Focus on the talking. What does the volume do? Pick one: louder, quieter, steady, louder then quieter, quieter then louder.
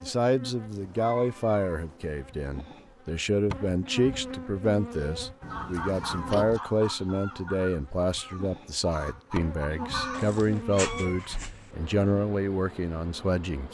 steady.